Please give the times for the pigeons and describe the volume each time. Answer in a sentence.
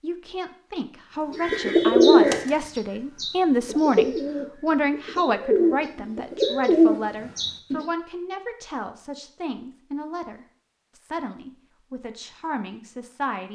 You can hear the pigeons from 1.3 to 7.8 s, getting quieter then louder.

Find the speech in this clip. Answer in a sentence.
The speech can be heard from 0.0 to 13.5 s.